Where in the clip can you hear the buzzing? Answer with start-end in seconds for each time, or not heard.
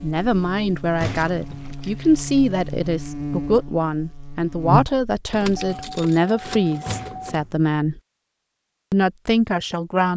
0.0-6.0.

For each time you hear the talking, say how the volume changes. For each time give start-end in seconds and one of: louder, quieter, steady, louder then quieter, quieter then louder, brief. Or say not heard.
0.0-8.0 steady
8.9-10.1 brief.